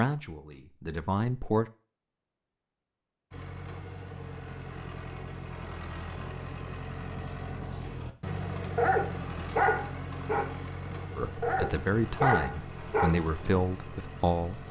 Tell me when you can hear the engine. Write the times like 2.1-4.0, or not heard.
3.3-14.6.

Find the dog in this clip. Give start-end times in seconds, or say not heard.
8.8-13.7.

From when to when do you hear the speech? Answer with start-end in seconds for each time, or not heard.
0.0-1.7, 11.2-14.6.